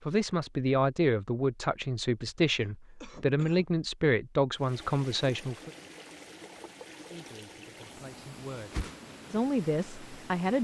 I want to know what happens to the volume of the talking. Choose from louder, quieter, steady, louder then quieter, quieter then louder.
quieter then louder.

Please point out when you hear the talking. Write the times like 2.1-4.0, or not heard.
0.1-5.7, 7.0-10.6.